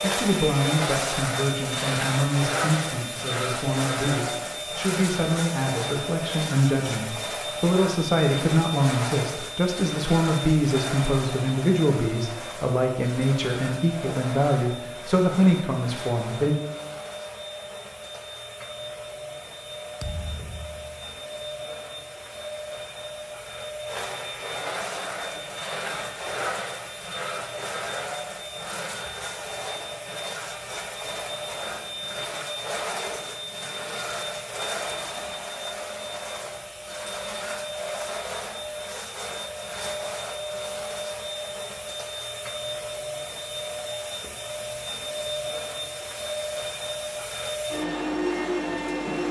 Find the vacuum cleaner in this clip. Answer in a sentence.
The vacuum cleaner can be heard from 0.0 to 49.2 s.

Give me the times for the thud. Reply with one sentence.
The thud can be heard from 20.0 to 21.1 s.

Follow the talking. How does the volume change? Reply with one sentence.
The volume of the talking stays about the same.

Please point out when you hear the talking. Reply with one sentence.
You can hear the talking from 0.0 to 16.6 s.